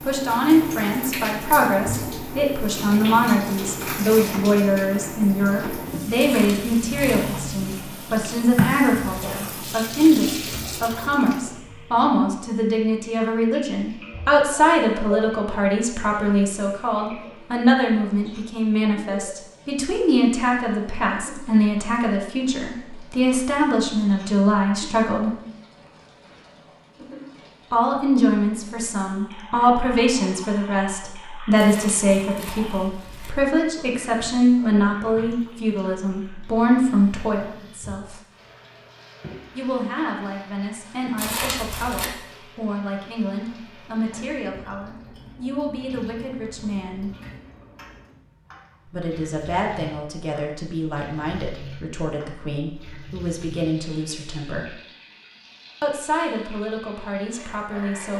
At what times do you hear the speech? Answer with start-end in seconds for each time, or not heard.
0.1-25.3, 27.7-38.2, 39.5-47.1, 48.9-54.8, 55.8-58.1.